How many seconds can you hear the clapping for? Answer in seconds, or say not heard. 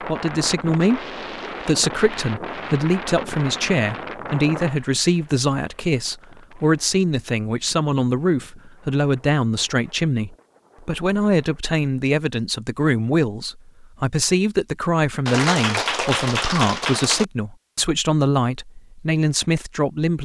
2 s.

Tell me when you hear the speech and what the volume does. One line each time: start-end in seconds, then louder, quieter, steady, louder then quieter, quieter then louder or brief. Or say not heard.
0.0-20.2 steady.